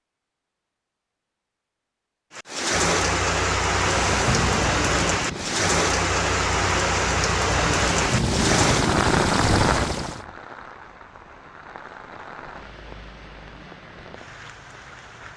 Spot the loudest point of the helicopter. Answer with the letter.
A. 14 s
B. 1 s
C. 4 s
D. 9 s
D.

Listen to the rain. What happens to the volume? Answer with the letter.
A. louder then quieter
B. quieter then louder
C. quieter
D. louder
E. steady
C.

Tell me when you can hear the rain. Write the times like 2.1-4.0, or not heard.
2.3-15.3.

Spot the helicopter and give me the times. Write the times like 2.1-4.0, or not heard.
3.7-10.2.